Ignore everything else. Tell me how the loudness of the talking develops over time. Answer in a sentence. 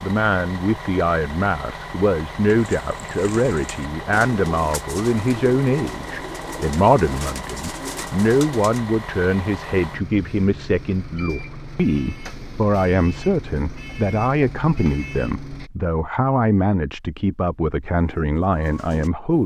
The loudness of the talking stays about the same.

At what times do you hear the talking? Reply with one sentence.
You can hear the talking from 0.0 to 19.4 s.